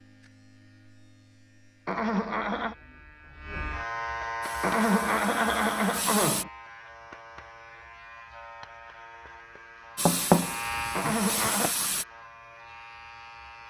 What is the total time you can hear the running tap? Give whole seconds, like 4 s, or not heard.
4 s.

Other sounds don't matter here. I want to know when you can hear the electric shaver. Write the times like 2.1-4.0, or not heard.
0.0-13.6.